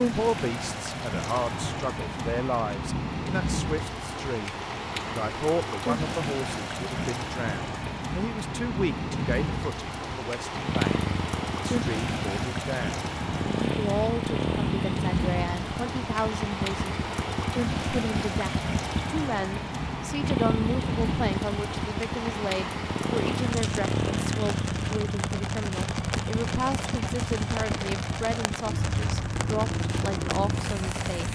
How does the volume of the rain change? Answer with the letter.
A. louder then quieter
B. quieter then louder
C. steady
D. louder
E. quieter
C.